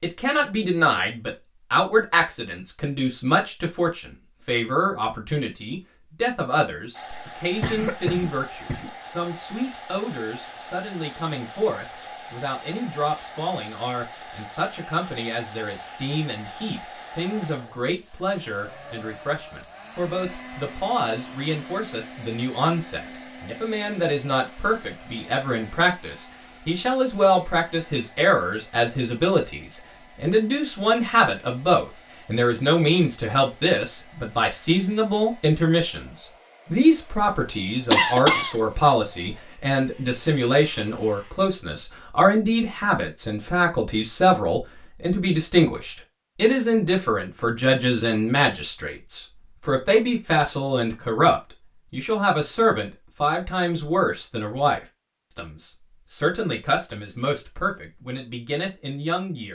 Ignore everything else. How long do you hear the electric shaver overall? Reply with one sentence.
The electric shaver can't be heard in this clip.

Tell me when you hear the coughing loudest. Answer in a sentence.
The volume of the coughing peaks at 38 seconds.